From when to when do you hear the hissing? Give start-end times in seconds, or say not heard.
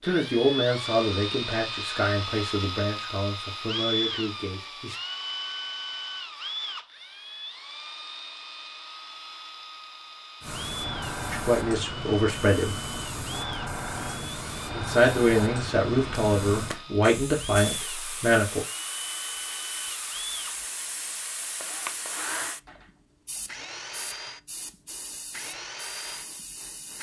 10.4-26.9.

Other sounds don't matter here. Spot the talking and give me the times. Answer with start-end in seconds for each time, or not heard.
0.0-5.0, 11.3-12.8, 14.7-18.6.